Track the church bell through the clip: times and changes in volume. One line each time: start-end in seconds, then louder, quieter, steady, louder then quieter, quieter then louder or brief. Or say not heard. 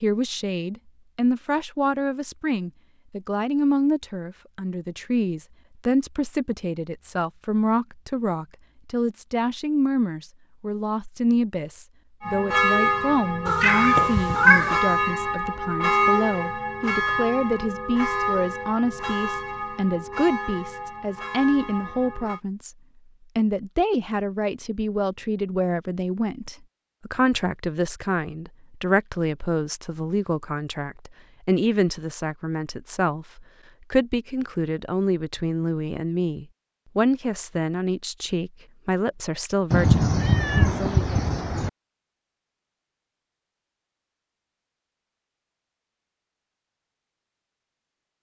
12.2-22.4 quieter.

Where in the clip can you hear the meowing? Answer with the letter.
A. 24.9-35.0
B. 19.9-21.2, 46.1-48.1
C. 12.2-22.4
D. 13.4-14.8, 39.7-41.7
D.